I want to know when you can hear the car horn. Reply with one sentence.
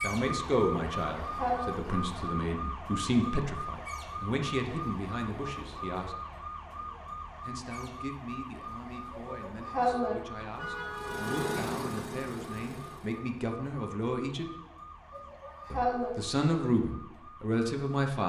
The car horn can be heard from 10.3 to 11.7 s.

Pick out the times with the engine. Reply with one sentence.
You can hear the engine from 10.9 to 13.2 s.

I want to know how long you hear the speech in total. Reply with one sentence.
You can hear the speech for 16 seconds altogether.